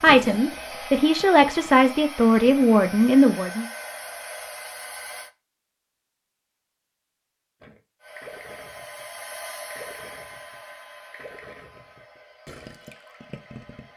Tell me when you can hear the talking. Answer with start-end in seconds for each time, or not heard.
0.0-3.6.